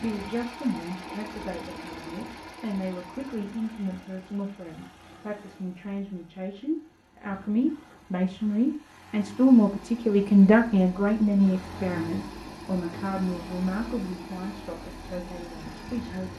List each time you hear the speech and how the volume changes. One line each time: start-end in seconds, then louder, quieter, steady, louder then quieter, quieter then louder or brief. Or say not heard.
0.0-16.3 louder then quieter.